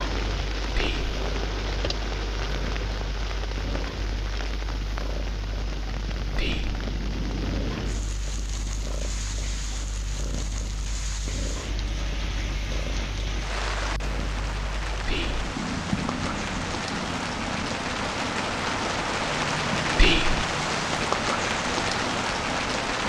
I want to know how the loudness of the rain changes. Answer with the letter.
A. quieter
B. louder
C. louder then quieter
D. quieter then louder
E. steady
B.